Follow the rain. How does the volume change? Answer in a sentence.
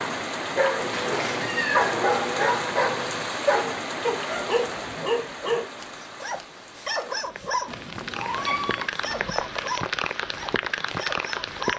The volume of the rain goes down, then up.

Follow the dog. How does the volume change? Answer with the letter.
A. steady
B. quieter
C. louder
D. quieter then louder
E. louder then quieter
B.